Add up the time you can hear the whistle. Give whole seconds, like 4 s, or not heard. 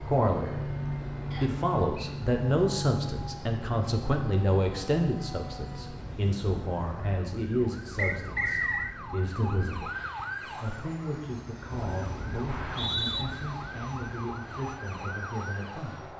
3 s.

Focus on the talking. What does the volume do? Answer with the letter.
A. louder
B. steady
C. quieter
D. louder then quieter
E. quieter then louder
C.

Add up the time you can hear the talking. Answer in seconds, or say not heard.
16 s.